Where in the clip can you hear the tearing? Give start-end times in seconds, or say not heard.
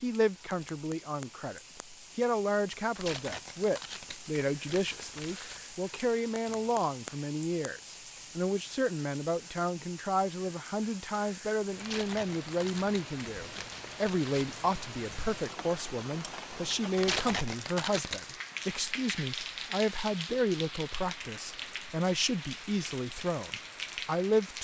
3.0-5.6, 11.8-14.6, 16.9-18.2.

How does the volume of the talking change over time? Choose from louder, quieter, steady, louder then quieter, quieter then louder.
steady.